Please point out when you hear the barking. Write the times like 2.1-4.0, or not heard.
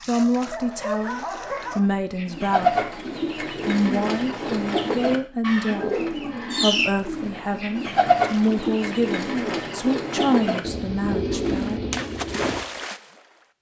0.1-1.9.